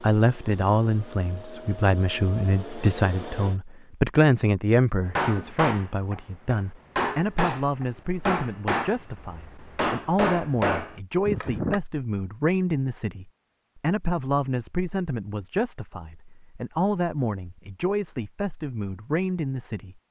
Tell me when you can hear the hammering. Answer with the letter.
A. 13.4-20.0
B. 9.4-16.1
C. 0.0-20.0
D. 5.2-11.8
D.